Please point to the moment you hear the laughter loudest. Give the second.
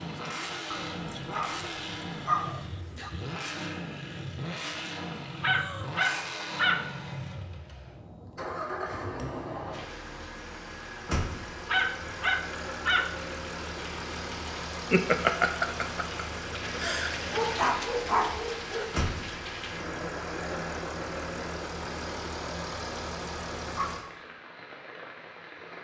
15 s.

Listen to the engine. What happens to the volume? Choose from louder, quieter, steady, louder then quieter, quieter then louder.
steady.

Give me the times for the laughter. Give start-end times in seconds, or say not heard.
14.7-17.1.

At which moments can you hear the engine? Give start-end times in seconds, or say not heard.
0.0-24.1.